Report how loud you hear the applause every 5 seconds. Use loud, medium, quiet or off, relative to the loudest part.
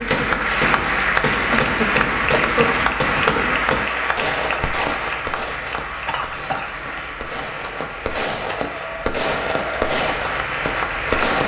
loud, medium, loud.